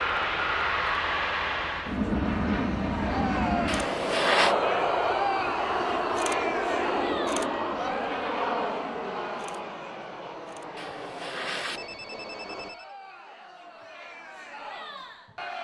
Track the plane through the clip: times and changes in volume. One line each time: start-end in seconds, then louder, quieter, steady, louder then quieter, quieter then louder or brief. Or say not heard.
0.0-12.8 quieter.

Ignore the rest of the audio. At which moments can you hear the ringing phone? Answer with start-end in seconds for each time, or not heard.
3.6-4.5, 10.8-12.8.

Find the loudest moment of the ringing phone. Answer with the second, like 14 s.
4 s.